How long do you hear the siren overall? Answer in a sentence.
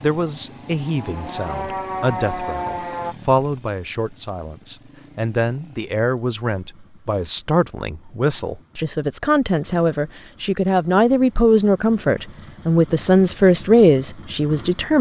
The siren can be heard for 3 seconds in total.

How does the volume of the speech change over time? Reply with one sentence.
The volume of the speech goes up.